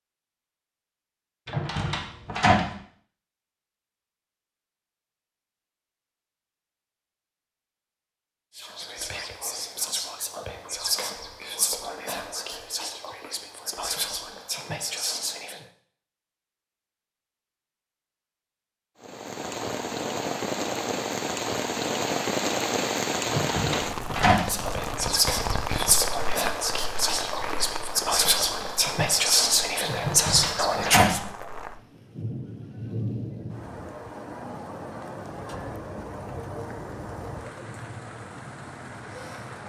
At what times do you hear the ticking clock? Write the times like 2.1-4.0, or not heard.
not heard.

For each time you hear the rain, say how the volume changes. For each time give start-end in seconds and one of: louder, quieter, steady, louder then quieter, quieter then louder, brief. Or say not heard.
19.0-39.6 quieter.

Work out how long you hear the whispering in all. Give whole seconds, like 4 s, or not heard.
14 s.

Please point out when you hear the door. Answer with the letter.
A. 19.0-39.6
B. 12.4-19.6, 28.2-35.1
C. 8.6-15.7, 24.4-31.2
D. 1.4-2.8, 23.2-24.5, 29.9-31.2
D.